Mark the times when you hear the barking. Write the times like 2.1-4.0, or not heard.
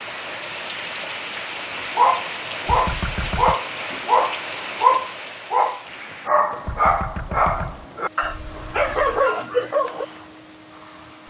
1.9-10.1.